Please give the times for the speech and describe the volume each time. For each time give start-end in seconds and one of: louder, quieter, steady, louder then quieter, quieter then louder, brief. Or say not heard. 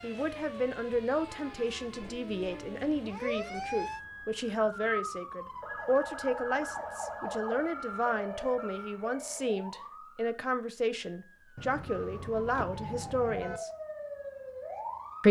0.0-13.7 steady.